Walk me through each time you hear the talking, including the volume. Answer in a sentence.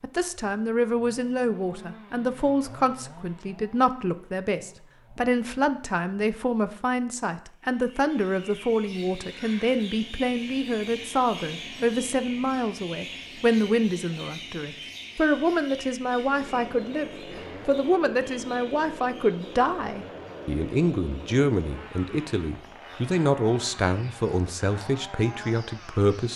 You can hear the talking from 0.0 to 26.3 s, at a steady volume.